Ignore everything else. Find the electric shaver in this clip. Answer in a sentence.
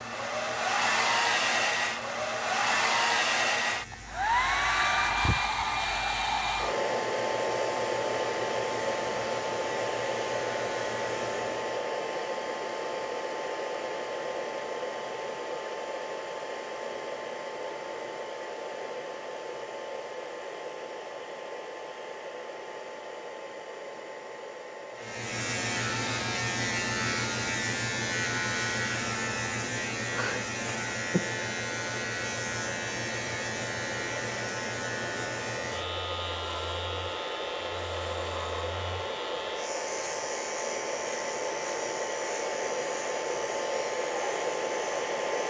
The electric shaver can be heard from 0.0 to 11.8 s and from 24.9 to 45.4 s.